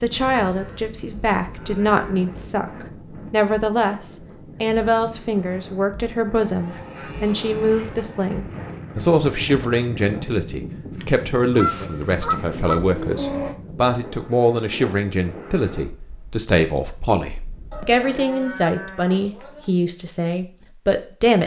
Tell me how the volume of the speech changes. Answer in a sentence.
The loudness of the speech stays about the same.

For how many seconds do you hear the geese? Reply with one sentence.
You can hear the geese for 3 seconds altogether.